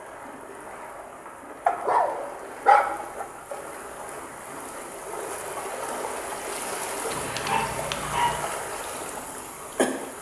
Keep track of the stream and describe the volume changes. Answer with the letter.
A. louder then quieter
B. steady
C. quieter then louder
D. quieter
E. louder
E.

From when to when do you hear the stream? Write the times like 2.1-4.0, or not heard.
0.0-10.1.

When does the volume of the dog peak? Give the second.
3 s.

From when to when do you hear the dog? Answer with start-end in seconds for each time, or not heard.
1.6-3.2, 7.1-8.4.